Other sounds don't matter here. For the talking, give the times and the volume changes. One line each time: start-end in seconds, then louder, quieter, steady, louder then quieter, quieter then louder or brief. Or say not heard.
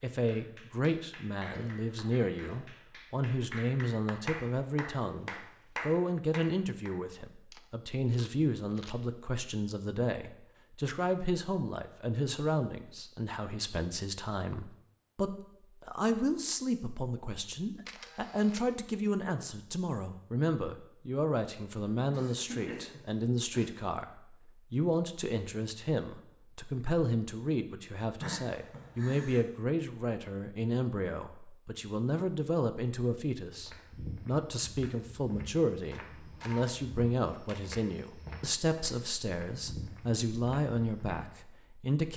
0.0-42.1 steady.